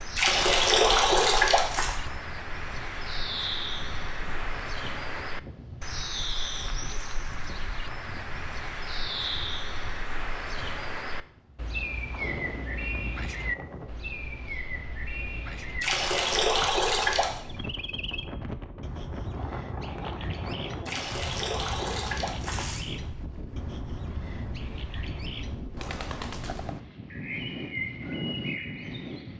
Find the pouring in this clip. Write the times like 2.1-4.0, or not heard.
0.1-1.9, 15.8-17.4, 20.9-22.9.